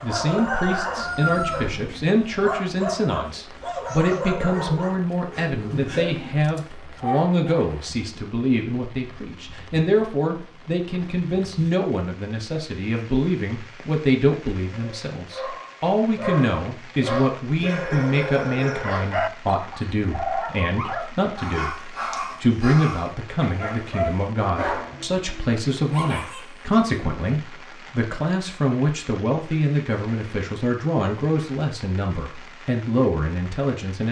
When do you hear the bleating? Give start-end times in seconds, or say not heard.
not heard.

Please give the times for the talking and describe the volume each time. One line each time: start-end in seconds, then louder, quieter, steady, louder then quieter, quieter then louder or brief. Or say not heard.
0.0-34.0 steady.